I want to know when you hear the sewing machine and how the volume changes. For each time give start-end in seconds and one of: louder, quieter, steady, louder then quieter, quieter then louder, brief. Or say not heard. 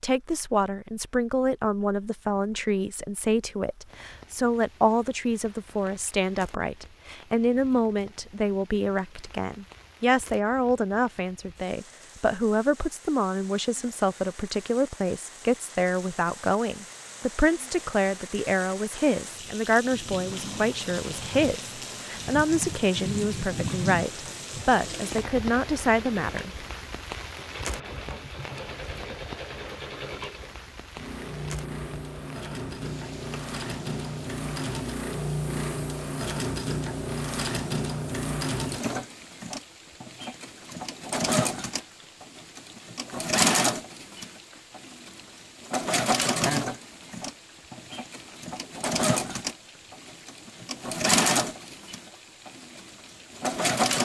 20.2-53.9 louder.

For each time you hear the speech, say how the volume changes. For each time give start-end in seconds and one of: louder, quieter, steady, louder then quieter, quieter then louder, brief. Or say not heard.
0.0-26.5 steady.